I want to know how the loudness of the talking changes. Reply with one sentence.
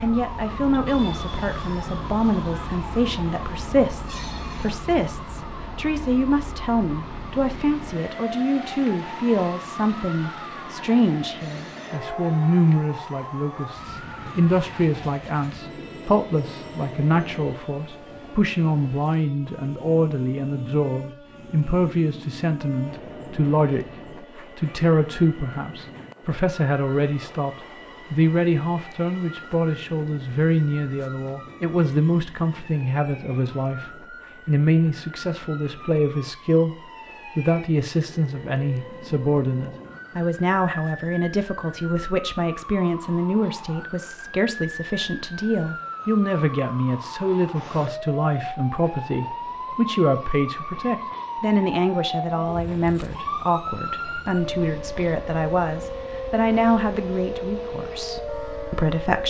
The loudness of the talking stays about the same.